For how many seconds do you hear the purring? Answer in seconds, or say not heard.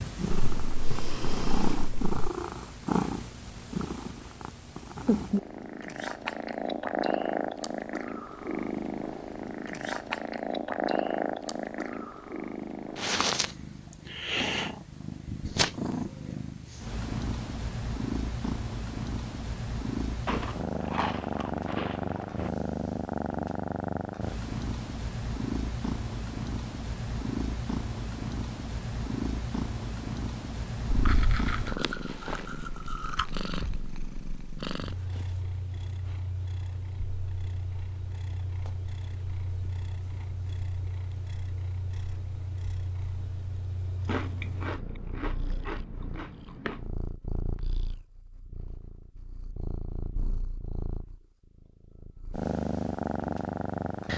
54 s.